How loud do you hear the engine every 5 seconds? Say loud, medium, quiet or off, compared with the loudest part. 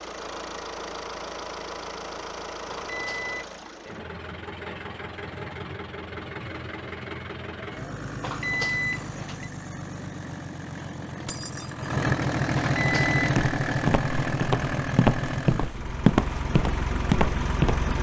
medium, medium, loud, loud.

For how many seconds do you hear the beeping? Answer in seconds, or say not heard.
3 s.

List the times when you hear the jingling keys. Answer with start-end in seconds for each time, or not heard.
11.2-11.9.